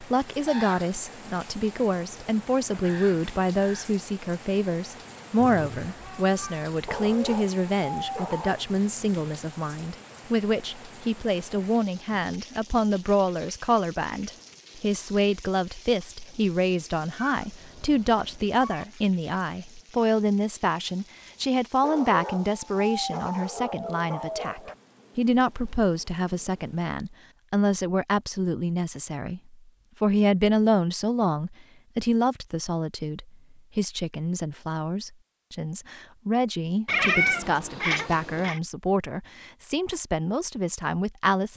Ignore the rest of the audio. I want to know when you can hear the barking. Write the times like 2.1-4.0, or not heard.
6.8-8.7, 21.8-24.8.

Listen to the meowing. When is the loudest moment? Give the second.
37 s.